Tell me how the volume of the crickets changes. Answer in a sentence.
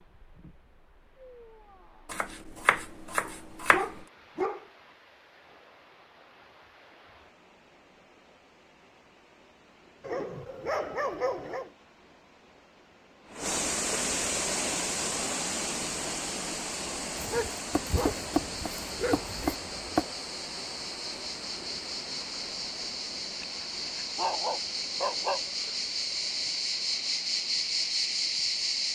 The loudness of the crickets goes up.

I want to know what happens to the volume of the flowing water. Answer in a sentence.
The loudness of the flowing water goes up, then down.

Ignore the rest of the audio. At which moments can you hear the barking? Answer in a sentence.
You can hear the barking from 3.2 to 4.7 s, from 10.0 to 11.7 s, from 17.1 to 19.6 s and from 24.1 to 25.6 s.